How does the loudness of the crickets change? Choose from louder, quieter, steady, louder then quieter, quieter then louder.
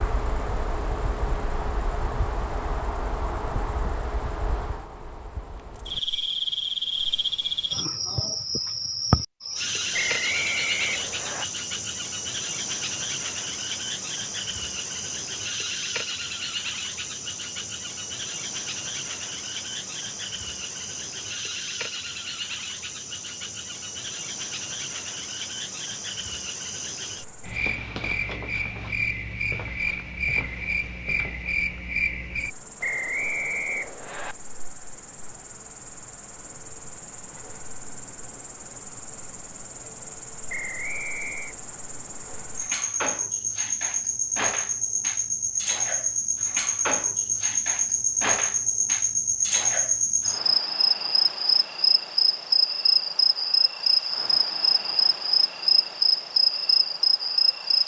louder.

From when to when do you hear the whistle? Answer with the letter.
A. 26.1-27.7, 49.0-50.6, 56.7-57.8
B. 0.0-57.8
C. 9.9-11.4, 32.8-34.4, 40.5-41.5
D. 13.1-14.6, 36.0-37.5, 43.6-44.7
C.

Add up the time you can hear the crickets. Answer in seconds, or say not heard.
58 s.